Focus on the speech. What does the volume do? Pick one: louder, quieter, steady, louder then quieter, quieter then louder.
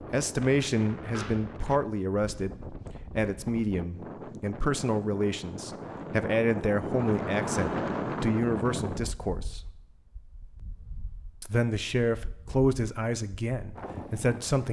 steady.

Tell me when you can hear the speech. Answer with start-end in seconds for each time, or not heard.
0.0-9.7, 11.4-14.6.